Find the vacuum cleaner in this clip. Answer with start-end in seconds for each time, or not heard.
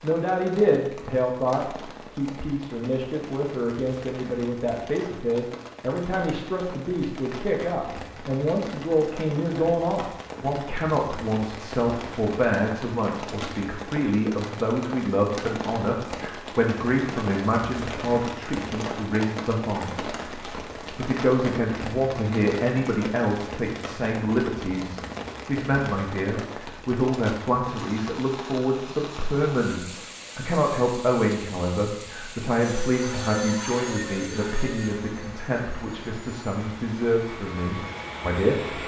32.6-38.8.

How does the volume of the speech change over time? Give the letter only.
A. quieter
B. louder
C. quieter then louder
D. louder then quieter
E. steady
E.